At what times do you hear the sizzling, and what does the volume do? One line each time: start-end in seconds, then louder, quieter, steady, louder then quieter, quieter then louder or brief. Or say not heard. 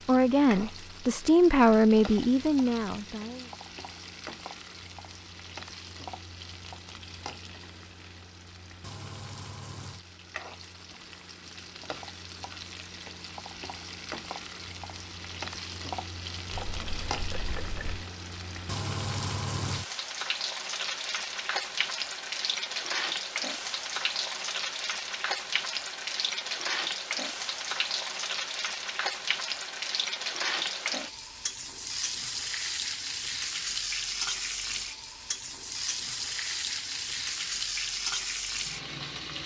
0.0-39.4 louder.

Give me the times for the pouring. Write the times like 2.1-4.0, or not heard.
16.5-18.1.